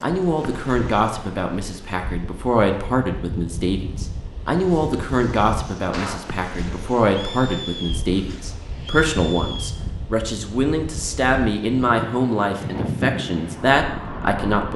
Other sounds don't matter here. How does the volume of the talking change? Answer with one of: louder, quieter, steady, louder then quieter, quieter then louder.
steady.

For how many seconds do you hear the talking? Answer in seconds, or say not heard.
15 s.